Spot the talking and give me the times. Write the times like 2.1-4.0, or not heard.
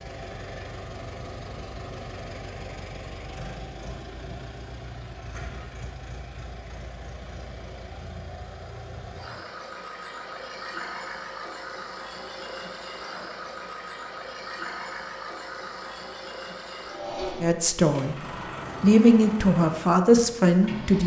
17.4-18.1, 18.8-21.0.